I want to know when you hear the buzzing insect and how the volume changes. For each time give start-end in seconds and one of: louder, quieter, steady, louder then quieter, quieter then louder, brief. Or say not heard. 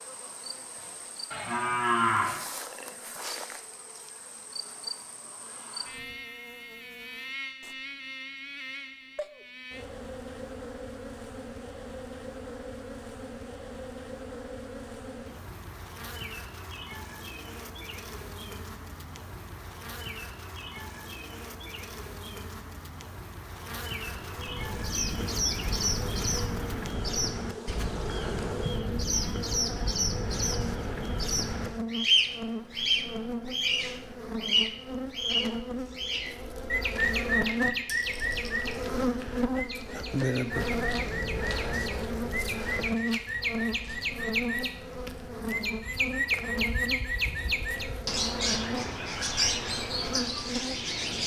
0.0-51.2 louder.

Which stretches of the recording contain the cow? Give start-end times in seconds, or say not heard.
1.3-2.4.